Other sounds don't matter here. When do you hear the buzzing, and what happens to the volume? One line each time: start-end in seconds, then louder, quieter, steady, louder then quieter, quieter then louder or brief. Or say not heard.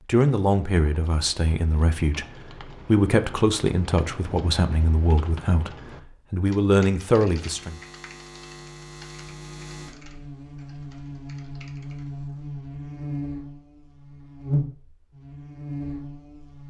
7.3-16.6 louder.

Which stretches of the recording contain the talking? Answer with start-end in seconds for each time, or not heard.
0.1-7.8.